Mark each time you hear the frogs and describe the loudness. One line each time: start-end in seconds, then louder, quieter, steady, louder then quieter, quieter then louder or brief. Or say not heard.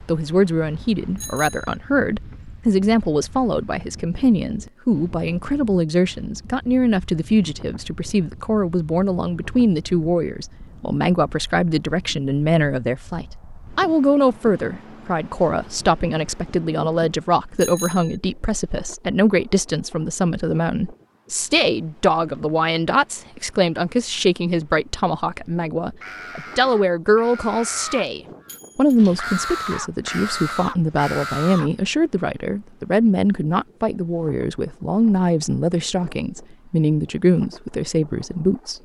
not heard.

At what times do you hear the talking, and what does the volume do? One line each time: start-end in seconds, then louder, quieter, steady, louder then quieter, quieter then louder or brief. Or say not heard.
0.1-38.8 steady.